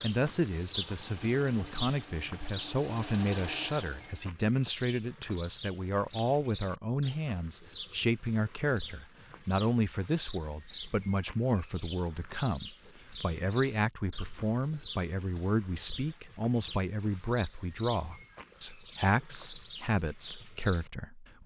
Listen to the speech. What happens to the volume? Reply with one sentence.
The loudness of the speech stays about the same.